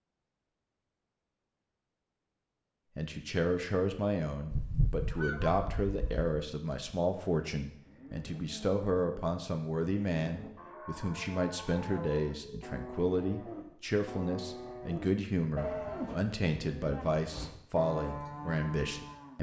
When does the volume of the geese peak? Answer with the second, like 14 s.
5 s.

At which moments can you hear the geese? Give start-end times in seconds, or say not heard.
4.5-6.3.